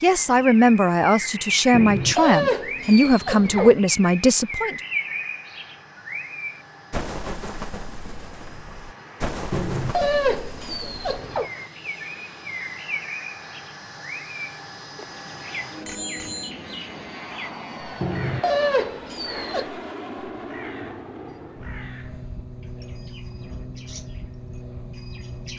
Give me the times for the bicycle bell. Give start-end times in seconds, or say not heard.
15.8-16.5.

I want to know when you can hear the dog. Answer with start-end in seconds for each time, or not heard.
1.7-3.8, 9.5-11.5, 18.0-19.6.